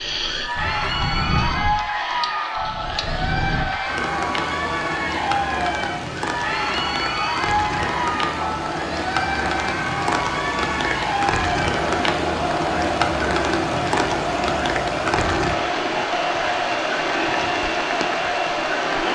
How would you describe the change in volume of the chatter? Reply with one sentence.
The volume of the chatter stays about the same.